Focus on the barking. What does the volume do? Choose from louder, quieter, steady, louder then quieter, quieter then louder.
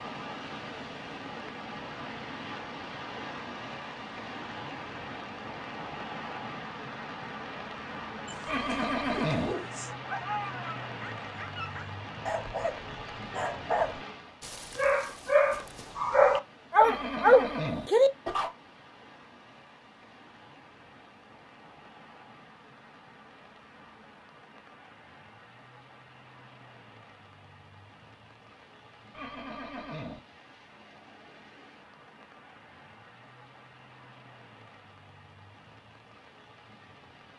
louder.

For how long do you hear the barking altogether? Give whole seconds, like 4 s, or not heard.
10 s.